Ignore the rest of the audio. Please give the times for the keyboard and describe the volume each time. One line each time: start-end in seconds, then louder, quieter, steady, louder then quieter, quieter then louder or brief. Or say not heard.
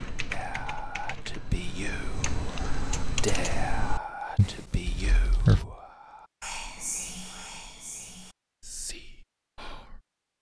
0.0-5.7 louder.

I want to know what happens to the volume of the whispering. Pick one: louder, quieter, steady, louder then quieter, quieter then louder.
quieter.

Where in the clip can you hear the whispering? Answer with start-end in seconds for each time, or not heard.
0.3-10.0.